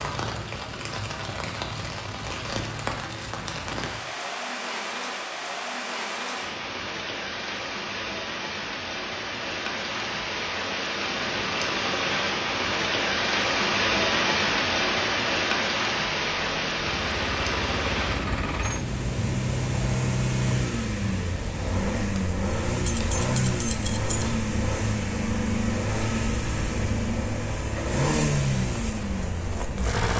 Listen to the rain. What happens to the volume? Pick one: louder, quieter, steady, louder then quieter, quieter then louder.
louder then quieter.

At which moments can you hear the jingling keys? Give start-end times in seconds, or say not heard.
22.9-24.3.